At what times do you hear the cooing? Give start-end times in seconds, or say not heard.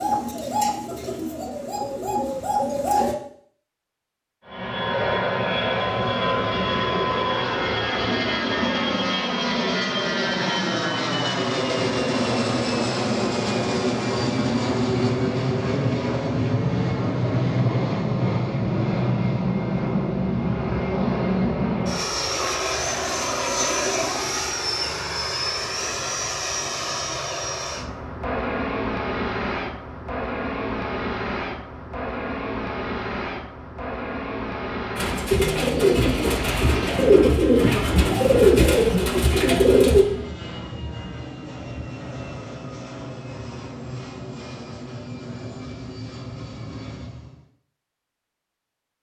0.0-3.1, 35.0-40.0.